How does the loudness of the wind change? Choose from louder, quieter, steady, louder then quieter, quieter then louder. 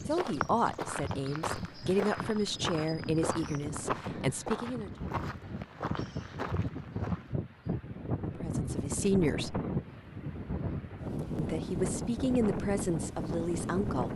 louder.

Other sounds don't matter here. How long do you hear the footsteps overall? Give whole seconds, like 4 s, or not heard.
7 s.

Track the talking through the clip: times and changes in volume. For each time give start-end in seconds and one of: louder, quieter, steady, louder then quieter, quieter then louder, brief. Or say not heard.
0.1-4.9 quieter
8.3-9.6 brief
11.3-14.1 brief.